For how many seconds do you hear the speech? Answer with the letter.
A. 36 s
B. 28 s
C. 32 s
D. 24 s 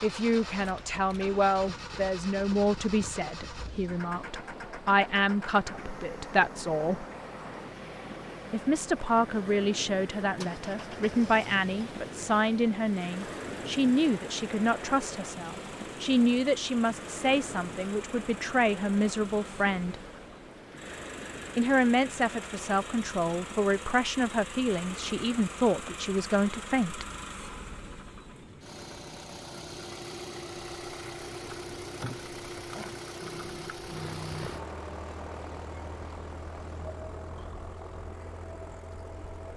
D.